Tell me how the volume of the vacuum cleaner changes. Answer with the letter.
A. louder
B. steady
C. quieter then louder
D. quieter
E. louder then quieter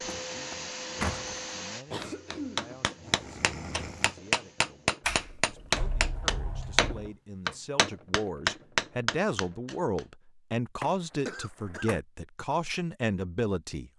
D.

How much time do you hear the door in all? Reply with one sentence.
The door can be heard for 5 seconds in total.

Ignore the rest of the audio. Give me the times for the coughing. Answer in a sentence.
The coughing can be heard from 1.9 to 4.2 s and from 11.2 to 11.9 s.